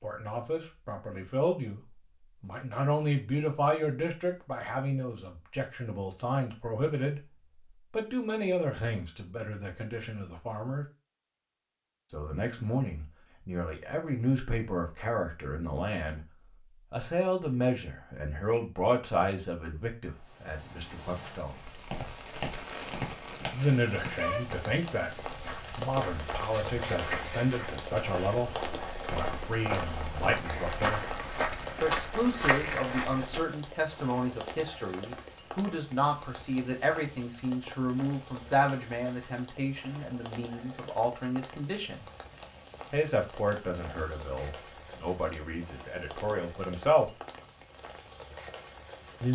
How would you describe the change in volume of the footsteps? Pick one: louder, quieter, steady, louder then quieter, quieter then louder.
louder.